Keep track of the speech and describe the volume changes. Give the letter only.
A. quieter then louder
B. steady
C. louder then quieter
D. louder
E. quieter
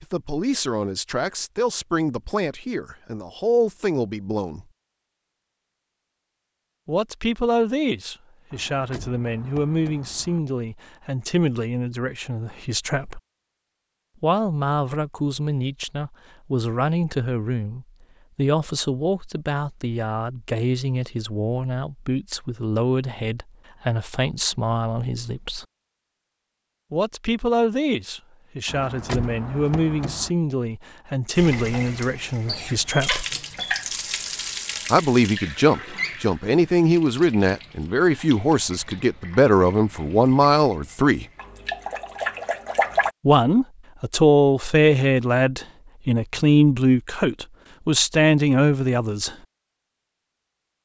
D.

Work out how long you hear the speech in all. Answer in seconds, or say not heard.
41 s.